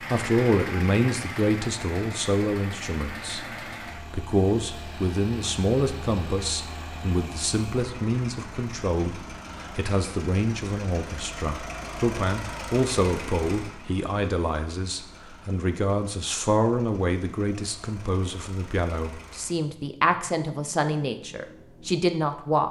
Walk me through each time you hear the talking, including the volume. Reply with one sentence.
You can hear the talking from 0.0 to 22.6 s, at a steady volume.